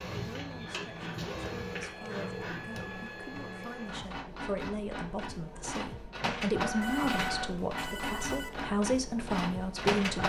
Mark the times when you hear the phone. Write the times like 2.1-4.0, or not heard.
1.4-2.5, 6.8-8.7.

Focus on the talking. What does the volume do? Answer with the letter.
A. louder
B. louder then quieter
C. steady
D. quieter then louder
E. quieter
A.